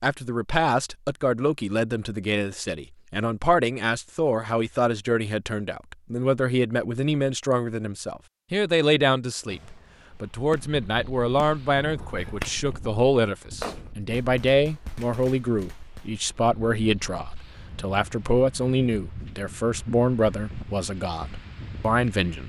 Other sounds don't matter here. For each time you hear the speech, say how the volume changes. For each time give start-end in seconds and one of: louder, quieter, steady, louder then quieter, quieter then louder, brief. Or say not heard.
0.0-22.4 steady.